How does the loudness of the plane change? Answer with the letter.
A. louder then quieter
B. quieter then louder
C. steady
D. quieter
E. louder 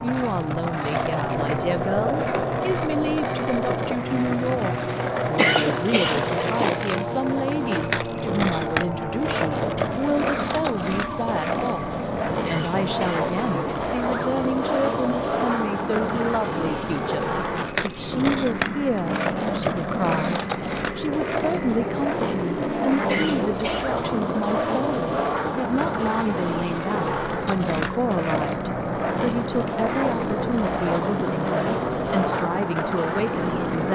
C.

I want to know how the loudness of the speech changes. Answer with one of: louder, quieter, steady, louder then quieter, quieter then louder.
steady.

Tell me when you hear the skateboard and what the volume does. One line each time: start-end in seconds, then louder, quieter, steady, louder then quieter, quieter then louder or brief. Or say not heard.
0.0-33.8 steady.